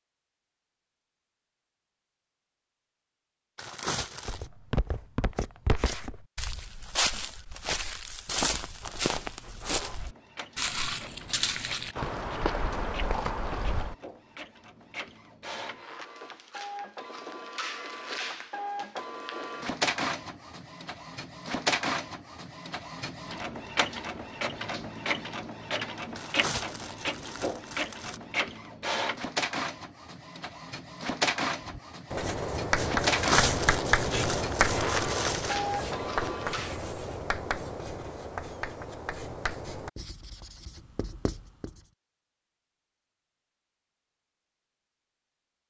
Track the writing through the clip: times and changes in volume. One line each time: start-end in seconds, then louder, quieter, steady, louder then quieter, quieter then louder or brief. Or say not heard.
31.6-41.9 quieter.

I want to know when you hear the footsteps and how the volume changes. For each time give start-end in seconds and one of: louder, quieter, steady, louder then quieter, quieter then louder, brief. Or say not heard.
4.2-13.9 steady.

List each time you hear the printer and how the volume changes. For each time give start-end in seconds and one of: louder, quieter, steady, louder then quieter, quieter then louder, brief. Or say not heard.
8.8-36.9 louder.